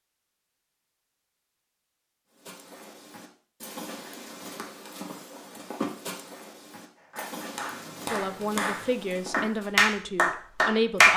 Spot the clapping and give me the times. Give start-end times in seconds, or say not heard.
7.0-11.1.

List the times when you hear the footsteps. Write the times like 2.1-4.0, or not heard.
2.4-9.7.